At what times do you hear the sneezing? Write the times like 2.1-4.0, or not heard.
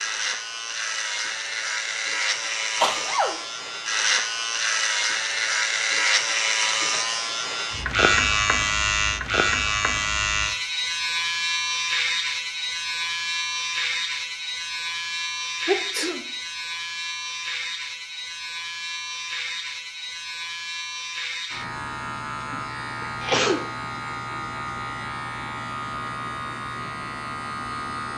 2.8-3.4, 15.7-16.2, 22.5-24.1.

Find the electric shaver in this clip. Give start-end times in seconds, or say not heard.
0.0-28.1.